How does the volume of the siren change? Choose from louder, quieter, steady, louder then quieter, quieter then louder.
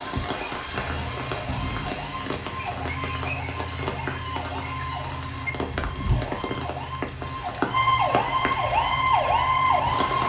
louder.